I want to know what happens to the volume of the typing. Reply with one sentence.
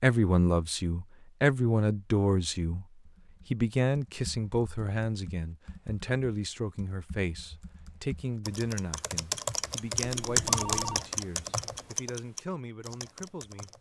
The volume of the typing goes up, then down.